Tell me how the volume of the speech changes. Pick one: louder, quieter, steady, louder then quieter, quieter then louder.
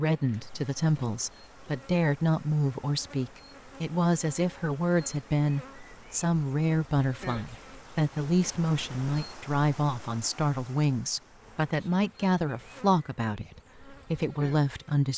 steady.